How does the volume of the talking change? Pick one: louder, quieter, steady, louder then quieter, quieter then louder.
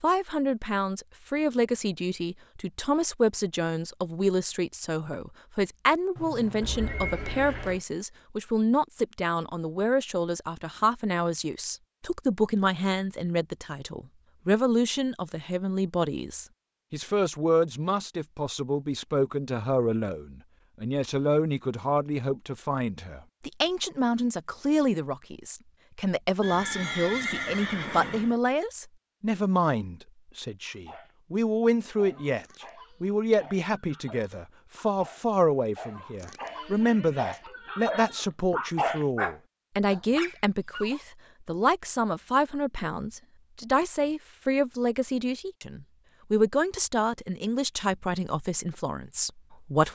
steady.